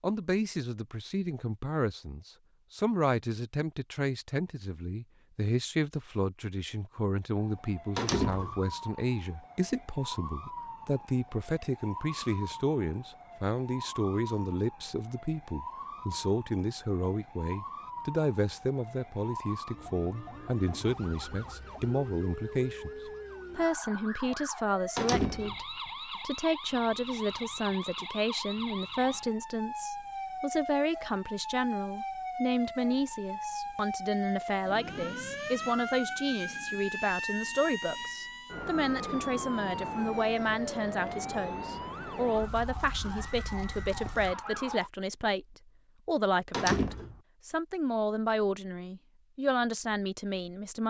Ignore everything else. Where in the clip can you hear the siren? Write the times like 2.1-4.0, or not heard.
7.3-44.9.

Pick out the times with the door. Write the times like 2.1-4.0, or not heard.
8.0-8.6, 24.9-25.6, 46.5-47.2.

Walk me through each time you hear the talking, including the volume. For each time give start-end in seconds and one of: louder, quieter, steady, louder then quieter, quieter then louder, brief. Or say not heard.
0.0-50.8 steady.